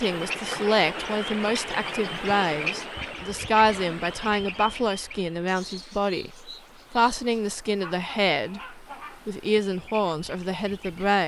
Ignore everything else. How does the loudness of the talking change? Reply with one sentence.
The loudness of the talking stays about the same.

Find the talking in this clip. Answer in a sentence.
You can hear the talking from 0.0 to 11.2 s.